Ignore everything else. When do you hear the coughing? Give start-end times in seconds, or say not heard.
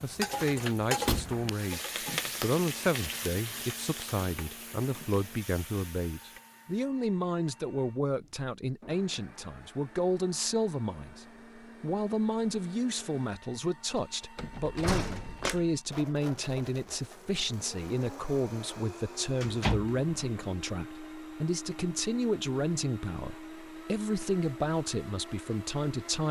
not heard.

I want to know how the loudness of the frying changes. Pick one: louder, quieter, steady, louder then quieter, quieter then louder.
quieter.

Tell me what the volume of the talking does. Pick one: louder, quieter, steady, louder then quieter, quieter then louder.
steady.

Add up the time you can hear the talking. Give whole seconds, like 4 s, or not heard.
26 s.